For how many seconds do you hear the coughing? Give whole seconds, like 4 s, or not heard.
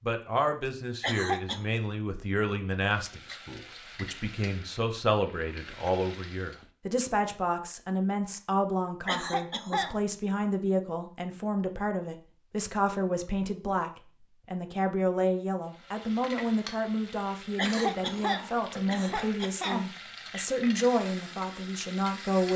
4 s.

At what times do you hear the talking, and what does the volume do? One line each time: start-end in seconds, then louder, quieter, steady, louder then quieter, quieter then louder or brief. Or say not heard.
0.0-22.5 steady.